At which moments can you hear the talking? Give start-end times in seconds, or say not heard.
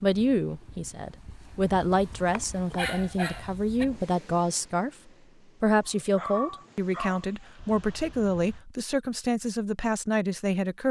0.0-4.9, 5.6-10.8.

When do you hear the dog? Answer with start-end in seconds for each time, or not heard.
1.6-3.9, 5.8-7.2.